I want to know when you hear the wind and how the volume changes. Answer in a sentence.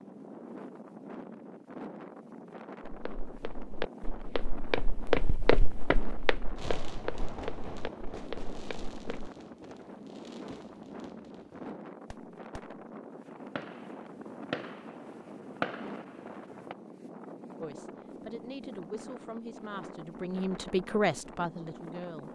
The wind can be heard from 0.0 to 22.3 s, at a steady volume.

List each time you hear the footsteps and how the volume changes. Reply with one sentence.
The footsteps can be heard from 2.9 to 9.3 s, getting louder then quieter.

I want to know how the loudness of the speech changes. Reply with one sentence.
The loudness of the speech goes up, then down.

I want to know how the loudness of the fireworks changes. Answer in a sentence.
The volume of the fireworks goes down, then up.